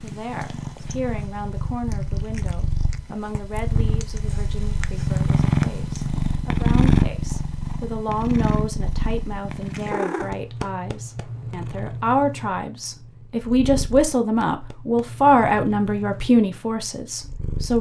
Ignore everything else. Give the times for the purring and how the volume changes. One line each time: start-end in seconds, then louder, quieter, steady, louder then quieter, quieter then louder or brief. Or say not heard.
0.0-17.7 louder then quieter.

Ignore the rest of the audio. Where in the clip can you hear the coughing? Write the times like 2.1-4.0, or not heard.
not heard.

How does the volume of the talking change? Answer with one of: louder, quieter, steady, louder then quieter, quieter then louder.
louder.